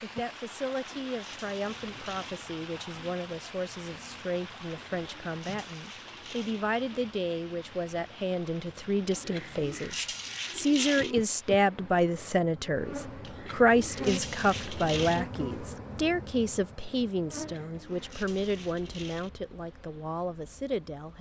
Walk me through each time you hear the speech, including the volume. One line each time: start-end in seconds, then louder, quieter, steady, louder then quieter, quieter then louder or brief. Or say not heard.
0.0-21.1 louder then quieter.